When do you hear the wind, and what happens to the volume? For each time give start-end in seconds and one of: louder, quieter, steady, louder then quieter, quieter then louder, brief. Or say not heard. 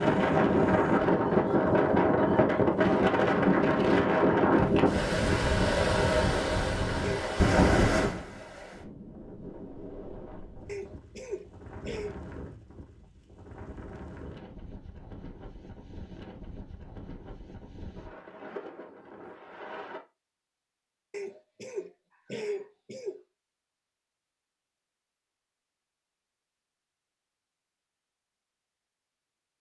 0.0-20.0 quieter.